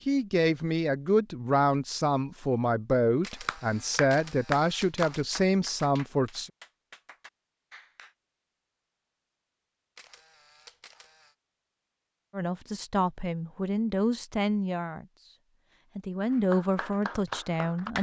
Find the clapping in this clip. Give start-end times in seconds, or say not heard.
3.5-8.2, 16.3-17.9.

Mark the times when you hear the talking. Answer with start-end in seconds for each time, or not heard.
0.1-6.5, 12.3-15.3, 15.9-17.9.